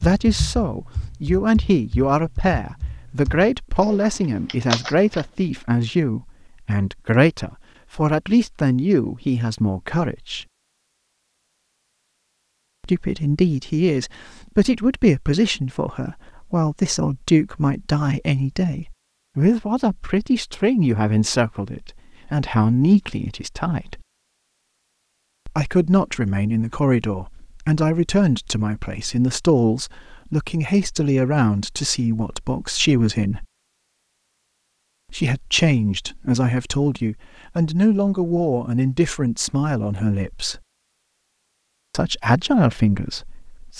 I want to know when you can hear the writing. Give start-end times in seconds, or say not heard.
not heard.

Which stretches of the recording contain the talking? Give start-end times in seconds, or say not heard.
0.0-10.4, 12.8-24.0, 25.4-33.5, 35.1-40.6, 41.9-43.7.